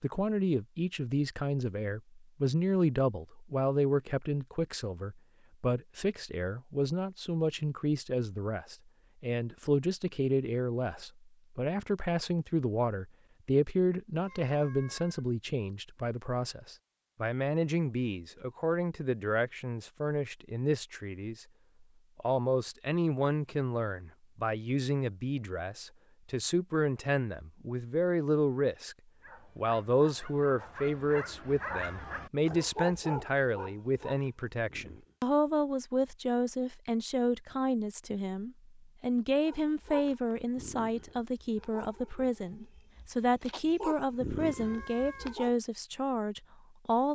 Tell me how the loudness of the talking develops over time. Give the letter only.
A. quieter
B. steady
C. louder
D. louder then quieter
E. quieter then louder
B.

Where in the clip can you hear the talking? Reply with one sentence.
The talking can be heard from 0.0 to 21.4 s, from 22.1 to 28.9 s and from 29.6 to 47.0 s.